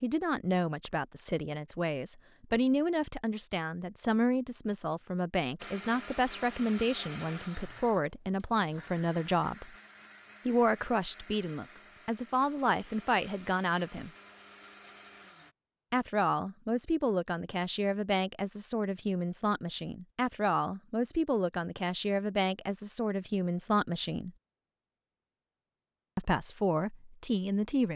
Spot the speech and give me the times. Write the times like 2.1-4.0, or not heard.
0.0-9.7, 10.4-14.1, 15.9-24.3, 26.1-27.9.